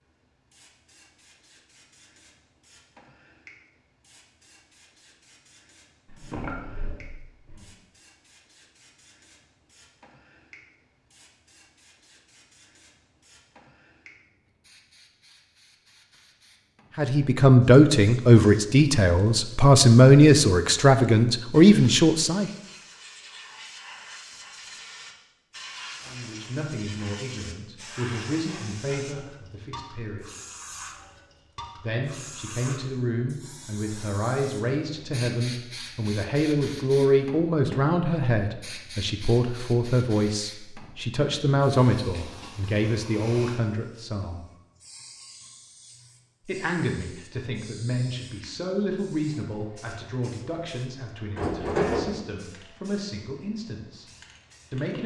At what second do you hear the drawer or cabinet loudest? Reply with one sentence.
The loudest moment of the drawer or cabinet is at 52 seconds.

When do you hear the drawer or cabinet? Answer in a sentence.
The drawer or cabinet can be heard from 6.0 to 7.7 s and from 51.4 to 52.2 s.